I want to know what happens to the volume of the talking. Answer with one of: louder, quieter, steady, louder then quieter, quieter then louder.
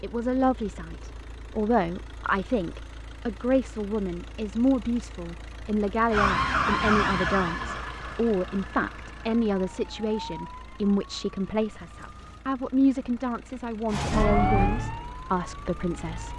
steady.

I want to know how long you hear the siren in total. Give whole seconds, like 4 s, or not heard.
9 s.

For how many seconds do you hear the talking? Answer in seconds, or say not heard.
16 s.